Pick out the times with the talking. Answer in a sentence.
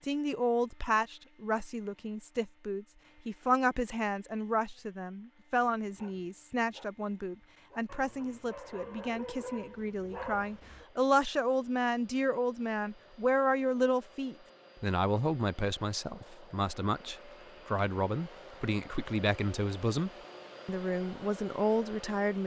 The talking can be heard from 0.0 to 22.4 s.